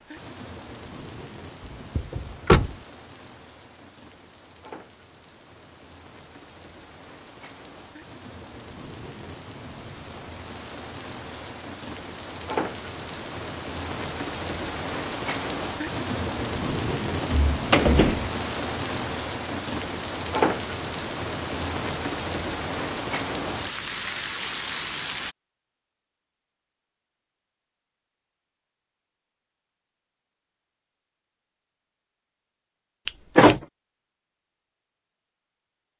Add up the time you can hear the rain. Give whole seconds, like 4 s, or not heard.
25 s.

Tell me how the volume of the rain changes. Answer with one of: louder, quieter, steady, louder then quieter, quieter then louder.
louder.